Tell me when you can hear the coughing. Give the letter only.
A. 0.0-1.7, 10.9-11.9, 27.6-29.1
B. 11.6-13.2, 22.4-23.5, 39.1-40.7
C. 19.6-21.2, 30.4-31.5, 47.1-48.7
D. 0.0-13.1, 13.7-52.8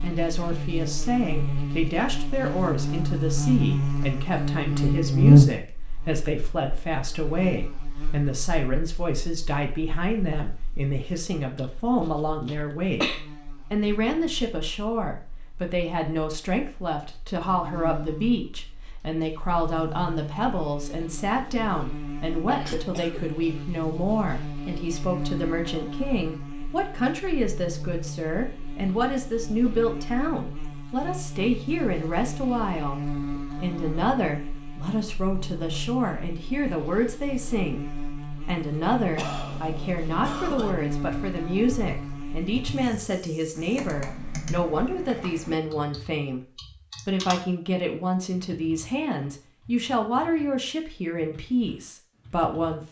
B.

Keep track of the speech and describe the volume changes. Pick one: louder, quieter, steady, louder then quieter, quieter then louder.
steady.